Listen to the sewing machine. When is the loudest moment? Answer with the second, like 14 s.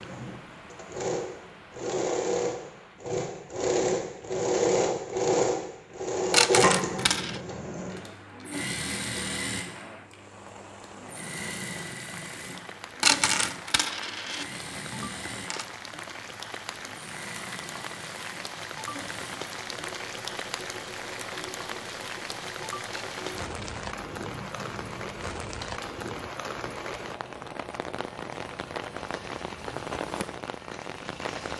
5 s.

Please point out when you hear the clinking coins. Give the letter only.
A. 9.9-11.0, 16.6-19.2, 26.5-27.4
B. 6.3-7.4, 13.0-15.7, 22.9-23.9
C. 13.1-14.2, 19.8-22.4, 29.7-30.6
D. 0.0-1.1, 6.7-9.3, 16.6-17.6
B.